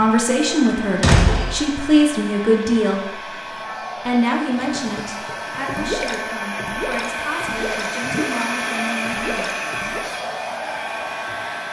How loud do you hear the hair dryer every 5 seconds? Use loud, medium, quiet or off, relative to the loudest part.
medium, loud, loud.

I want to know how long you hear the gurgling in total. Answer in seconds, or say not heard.
6 s.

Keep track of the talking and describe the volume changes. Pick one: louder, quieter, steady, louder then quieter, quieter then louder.
quieter.